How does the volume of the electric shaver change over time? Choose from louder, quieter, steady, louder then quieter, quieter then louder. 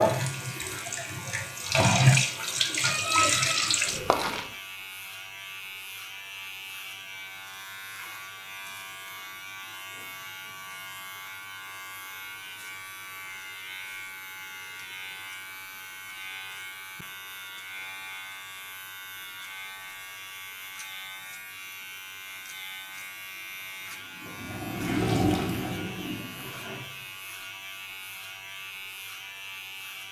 steady.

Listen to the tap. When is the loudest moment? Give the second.
2 s.